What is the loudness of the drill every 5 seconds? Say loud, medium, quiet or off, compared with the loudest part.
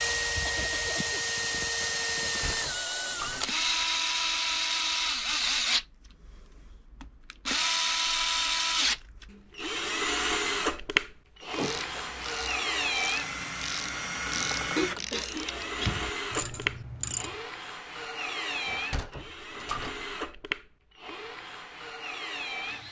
loud, loud, loud, medium, medium.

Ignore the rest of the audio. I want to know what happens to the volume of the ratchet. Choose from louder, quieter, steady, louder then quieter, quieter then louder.
louder.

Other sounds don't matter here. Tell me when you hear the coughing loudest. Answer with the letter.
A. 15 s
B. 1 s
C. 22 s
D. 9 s
A.